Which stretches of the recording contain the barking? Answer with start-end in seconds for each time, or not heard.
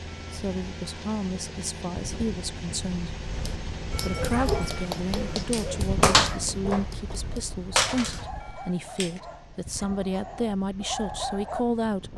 3.4-11.7.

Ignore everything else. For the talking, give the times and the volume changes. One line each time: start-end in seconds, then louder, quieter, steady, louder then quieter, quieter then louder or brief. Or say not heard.
0.3-3.2 brief
4.0-12.1 steady.